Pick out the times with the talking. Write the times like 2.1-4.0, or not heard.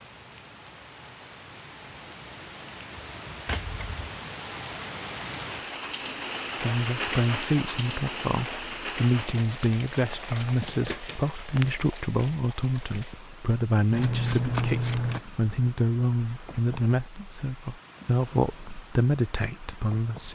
6.6-20.3.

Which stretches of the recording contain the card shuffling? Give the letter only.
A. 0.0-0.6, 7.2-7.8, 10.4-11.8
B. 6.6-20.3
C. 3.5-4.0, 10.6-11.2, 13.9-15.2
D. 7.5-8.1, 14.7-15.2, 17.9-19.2
C.